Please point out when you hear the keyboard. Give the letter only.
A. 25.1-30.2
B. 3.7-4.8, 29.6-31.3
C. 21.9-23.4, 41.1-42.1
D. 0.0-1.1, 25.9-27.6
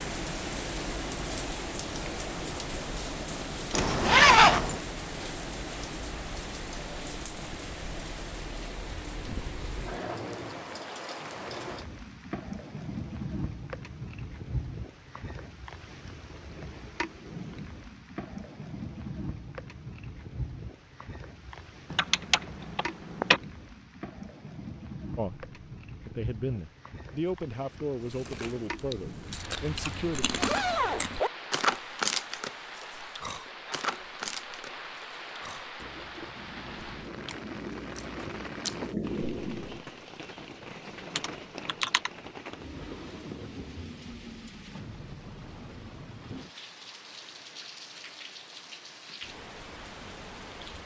C.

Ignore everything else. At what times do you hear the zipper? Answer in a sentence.
You can hear the zipper from 3.7 to 4.8 s and from 29.6 to 31.3 s.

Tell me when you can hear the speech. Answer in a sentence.
The speech can be heard from 25.1 to 30.2 s.